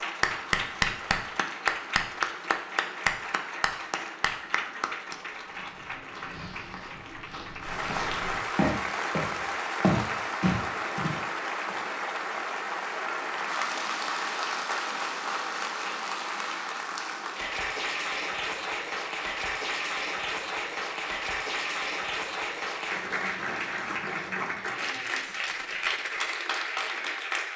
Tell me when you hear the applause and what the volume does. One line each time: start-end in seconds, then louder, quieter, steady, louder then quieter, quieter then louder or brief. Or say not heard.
0.0-27.5 steady.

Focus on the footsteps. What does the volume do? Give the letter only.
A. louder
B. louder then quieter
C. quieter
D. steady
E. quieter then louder
A.